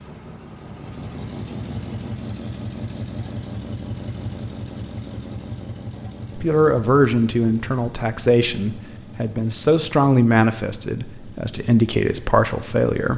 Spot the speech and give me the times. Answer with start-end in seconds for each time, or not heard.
6.3-13.1.